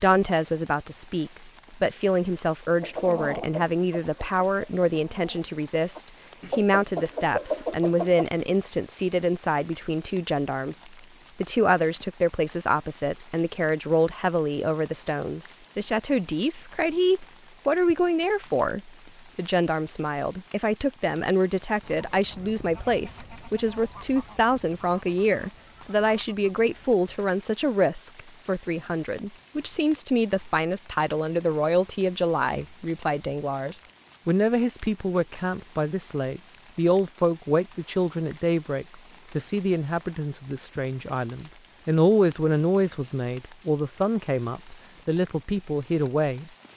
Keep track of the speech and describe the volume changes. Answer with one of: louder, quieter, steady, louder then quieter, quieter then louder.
steady.